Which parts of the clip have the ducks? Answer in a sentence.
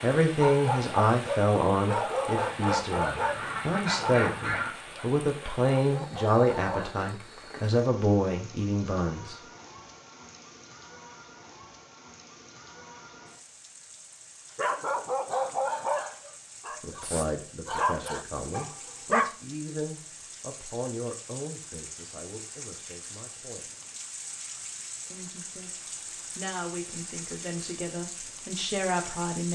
You can hear the ducks from 2.4 to 4.8 s.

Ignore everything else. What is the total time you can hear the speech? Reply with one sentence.
You can hear the speech for 20 seconds altogether.